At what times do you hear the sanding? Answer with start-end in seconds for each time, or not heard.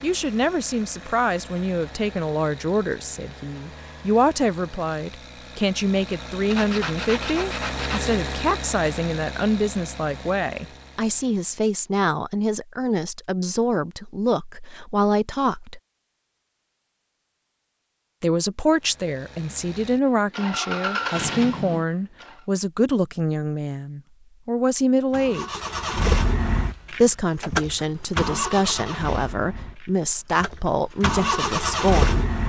6.5-8.0.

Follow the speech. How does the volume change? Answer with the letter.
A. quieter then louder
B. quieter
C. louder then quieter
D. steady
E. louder
D.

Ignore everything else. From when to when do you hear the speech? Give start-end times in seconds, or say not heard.
0.0-15.8, 18.2-25.6, 26.9-32.3.